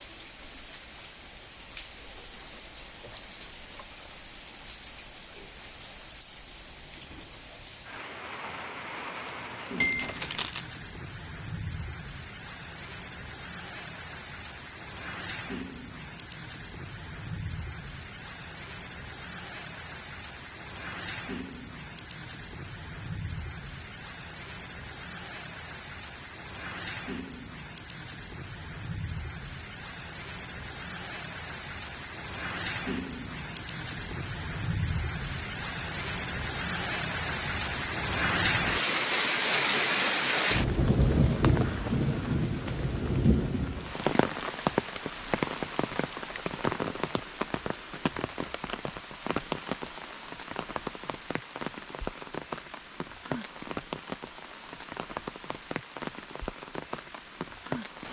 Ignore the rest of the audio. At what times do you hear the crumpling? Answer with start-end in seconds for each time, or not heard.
9.8-10.7.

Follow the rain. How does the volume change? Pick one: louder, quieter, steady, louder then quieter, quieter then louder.
louder then quieter.